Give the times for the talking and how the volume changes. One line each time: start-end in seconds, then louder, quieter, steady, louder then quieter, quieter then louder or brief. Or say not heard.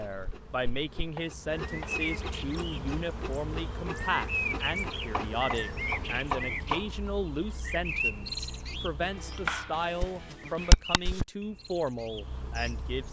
0.0-13.0 steady.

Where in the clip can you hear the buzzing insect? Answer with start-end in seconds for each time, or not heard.
0.0-6.7.